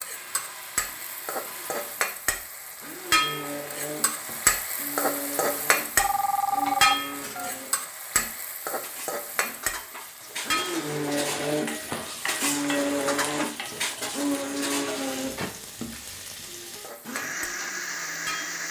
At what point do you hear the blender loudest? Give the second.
13 s.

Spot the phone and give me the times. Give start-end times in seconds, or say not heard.
6.0-7.5.